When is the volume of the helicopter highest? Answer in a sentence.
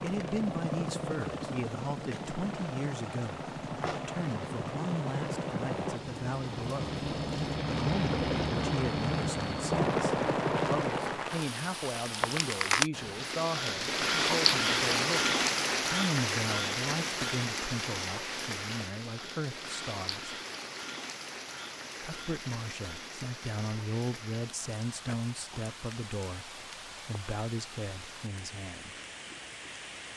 The loudest moment of the helicopter is at 10 seconds.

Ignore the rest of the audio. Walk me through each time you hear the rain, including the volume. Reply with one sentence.
The rain can be heard from 0.0 to 30.1 s, getting louder then quieter.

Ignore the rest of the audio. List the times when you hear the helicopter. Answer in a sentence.
The helicopter can be heard from 0.0 to 11.3 s.